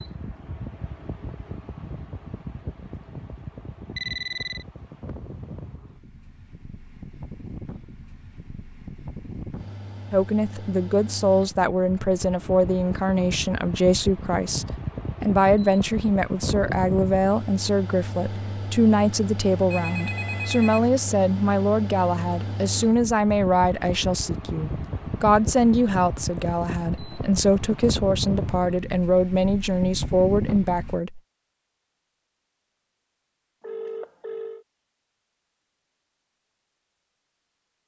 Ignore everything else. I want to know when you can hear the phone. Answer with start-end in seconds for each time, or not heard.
4.0-4.7, 19.7-20.9, 33.6-34.6.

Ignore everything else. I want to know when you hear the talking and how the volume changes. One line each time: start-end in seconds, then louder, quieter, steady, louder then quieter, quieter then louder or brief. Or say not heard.
10.1-31.2 steady.